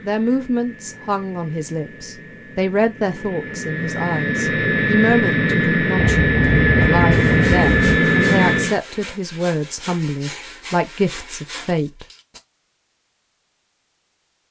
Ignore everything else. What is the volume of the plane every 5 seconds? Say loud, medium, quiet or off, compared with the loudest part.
medium, loud, off.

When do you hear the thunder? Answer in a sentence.
You can hear the thunder from 6.0 to 8.0 s.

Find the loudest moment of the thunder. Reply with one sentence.
The volume of the thunder peaks at 7 seconds.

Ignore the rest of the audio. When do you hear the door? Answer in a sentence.
The door can't be heard in this clip.